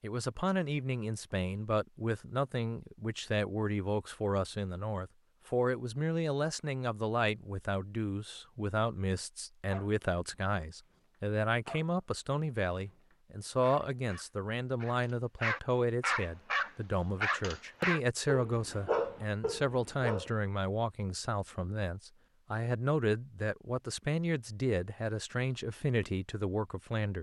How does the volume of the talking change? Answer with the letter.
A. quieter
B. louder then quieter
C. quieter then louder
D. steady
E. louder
D.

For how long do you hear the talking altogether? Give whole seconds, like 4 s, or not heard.
27 s.